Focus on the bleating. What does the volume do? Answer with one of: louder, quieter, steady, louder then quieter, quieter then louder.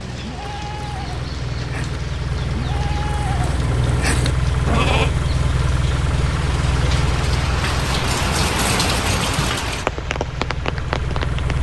louder.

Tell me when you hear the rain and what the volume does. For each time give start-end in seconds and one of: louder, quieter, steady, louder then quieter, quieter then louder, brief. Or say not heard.
0.0-11.5 louder.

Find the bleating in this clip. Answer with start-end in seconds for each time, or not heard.
0.0-5.2.